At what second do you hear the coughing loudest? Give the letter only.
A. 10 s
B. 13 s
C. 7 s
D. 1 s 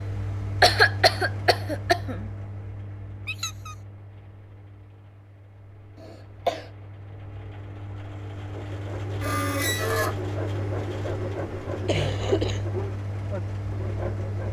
D.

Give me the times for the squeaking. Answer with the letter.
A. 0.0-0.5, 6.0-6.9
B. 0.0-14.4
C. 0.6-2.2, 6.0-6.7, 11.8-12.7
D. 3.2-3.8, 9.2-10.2
D.